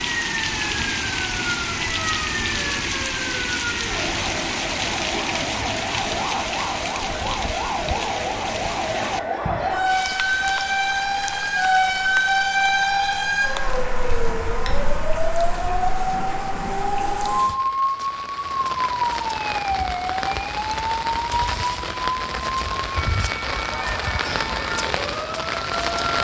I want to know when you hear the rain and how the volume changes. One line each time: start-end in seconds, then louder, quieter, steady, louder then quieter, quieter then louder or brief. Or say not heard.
0.0-26.1 quieter then louder.